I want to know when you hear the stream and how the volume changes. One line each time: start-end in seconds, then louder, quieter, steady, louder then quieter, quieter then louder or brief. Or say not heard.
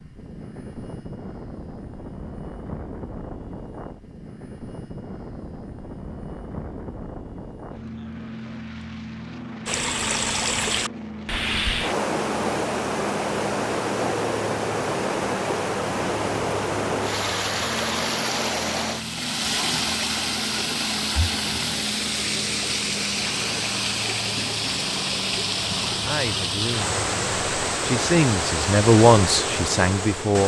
9.7-30.4 steady.